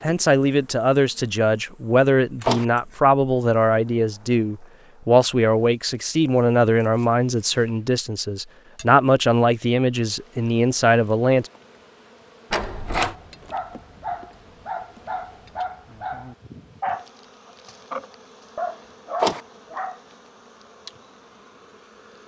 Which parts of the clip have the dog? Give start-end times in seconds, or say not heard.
12.9-20.0.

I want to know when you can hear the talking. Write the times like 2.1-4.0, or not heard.
0.0-11.5.